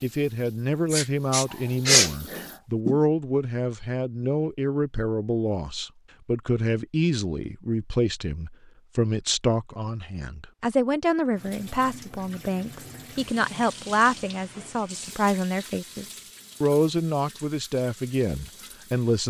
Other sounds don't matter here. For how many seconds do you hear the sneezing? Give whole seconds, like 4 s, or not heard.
2 s.